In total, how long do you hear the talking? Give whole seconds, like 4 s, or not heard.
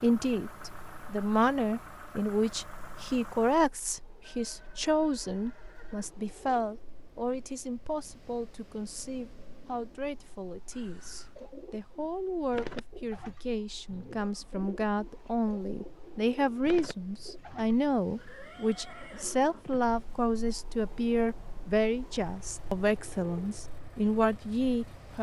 25 s.